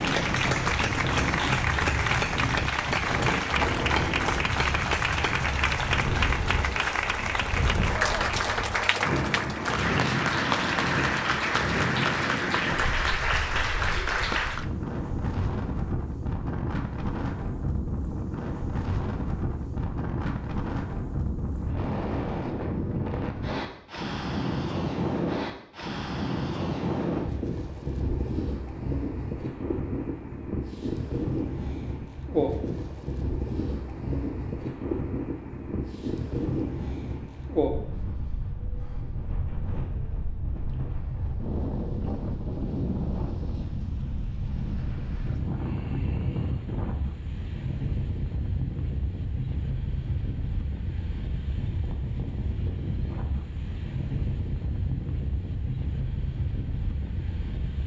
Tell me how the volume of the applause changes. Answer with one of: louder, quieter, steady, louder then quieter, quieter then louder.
steady.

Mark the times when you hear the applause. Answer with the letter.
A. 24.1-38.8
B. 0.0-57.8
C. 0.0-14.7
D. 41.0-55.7
C.